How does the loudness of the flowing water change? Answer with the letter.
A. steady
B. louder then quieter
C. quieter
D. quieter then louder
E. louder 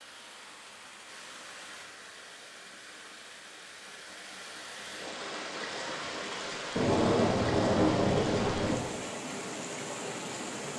E.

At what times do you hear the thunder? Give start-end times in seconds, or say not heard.
6.8-8.8.